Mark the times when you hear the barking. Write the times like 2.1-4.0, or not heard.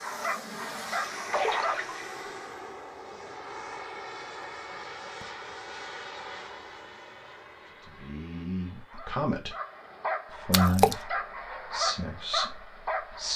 0.0-1.9, 8.8-13.3.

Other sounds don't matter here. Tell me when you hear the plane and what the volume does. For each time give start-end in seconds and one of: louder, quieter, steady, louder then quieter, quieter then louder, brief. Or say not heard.
0.0-13.3 quieter.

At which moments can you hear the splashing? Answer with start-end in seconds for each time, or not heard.
1.3-2.2, 10.5-10.9.